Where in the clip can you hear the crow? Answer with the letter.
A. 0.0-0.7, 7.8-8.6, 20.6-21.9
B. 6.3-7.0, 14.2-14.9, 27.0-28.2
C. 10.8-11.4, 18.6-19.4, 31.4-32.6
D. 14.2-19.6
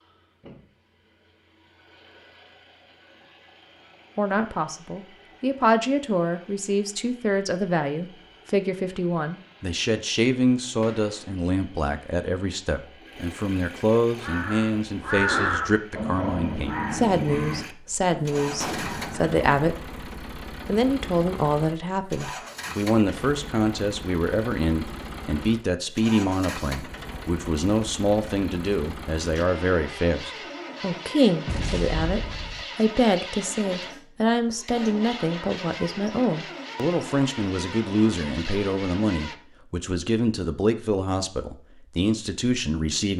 D.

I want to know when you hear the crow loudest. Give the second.
15 s.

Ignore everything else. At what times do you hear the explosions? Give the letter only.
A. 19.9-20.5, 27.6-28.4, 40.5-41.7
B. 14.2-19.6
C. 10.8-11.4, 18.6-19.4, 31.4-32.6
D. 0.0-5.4
C.